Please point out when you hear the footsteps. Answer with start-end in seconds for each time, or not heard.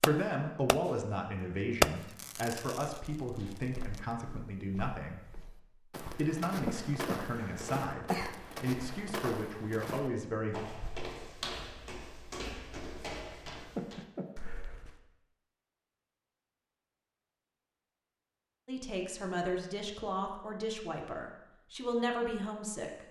3.4-15.1.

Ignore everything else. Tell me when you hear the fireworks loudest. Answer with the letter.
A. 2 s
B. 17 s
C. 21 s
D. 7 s
A.